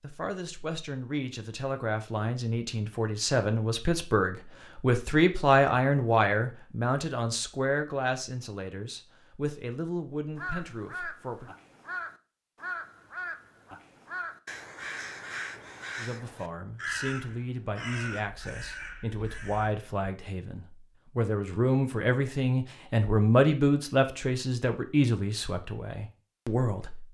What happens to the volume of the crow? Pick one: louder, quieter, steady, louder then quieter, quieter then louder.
steady.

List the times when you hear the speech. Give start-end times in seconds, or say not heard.
0.0-11.5, 15.9-27.0.